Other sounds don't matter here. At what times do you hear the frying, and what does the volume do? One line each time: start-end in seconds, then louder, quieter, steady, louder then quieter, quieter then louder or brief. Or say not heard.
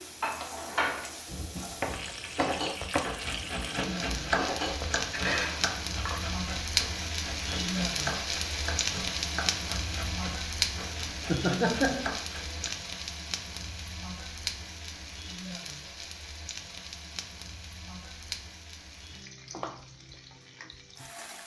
0.0-21.4 louder then quieter.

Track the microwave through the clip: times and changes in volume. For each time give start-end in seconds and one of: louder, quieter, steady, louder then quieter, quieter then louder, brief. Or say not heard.
not heard.